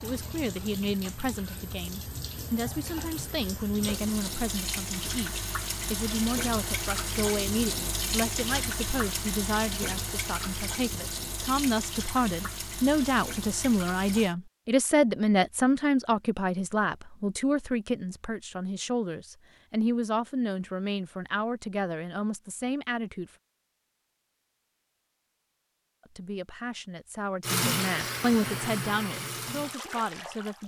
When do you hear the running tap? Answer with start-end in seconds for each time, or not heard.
0.0-14.3, 27.4-30.6.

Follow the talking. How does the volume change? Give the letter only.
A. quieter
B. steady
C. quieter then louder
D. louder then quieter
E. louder
D.